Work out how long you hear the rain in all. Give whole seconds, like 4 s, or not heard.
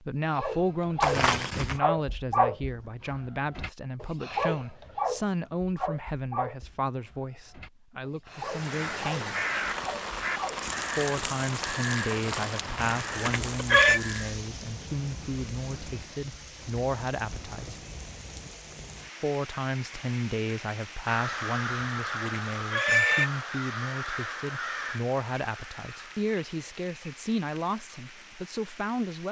21 s.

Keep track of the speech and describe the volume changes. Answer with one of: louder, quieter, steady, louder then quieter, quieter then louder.
steady.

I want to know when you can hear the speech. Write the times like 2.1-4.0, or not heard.
0.0-9.4, 10.9-17.8, 19.2-29.2.